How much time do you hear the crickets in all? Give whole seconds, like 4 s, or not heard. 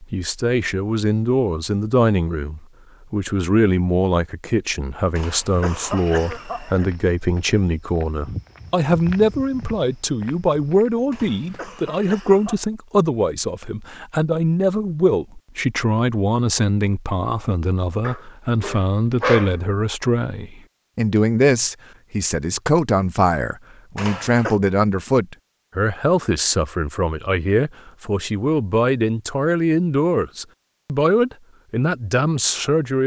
not heard.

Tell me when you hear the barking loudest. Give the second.
19 s.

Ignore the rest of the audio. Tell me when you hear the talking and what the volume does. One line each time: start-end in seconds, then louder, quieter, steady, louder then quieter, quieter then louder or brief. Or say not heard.
0.0-33.0 steady.